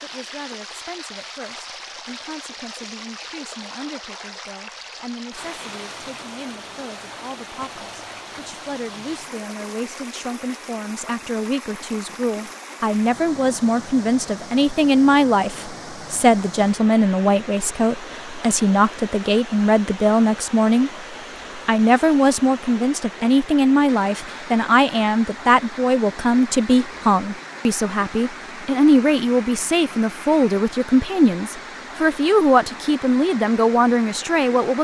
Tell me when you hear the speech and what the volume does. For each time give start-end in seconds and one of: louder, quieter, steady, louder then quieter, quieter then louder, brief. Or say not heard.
0.0-20.9 louder
21.6-34.7 steady.